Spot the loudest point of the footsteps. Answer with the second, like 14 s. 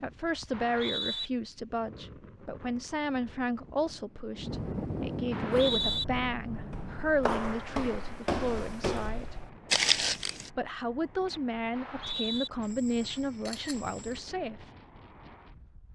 10 s.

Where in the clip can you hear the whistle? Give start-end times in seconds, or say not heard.
0.5-1.3, 5.3-6.0, 11.8-12.5.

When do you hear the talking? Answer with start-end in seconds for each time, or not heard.
0.0-9.3, 10.5-14.6.